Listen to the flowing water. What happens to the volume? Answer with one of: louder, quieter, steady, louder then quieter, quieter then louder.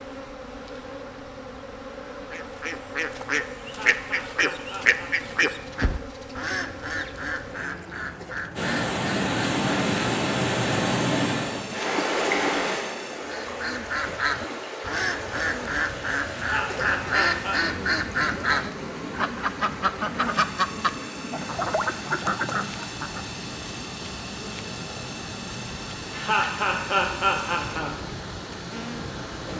quieter.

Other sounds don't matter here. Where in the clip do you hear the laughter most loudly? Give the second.
27 s.